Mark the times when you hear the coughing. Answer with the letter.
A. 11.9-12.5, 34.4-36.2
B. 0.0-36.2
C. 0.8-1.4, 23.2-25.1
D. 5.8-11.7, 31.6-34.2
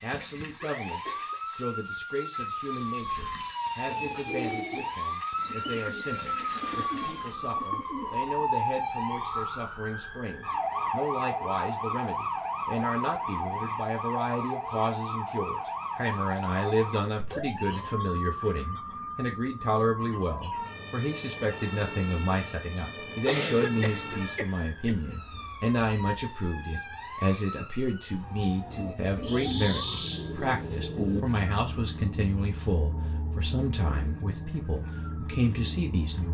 C.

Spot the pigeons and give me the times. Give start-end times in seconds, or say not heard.
2.9-8.7, 28.6-31.2.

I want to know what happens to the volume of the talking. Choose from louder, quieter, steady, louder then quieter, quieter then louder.
louder.